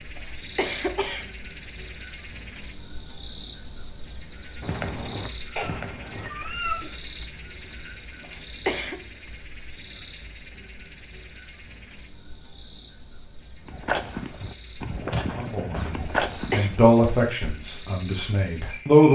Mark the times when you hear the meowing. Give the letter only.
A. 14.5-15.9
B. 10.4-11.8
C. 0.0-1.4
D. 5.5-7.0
D.